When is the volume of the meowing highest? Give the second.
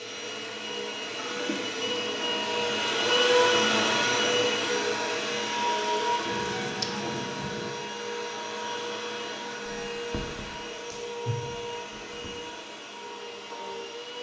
7 s.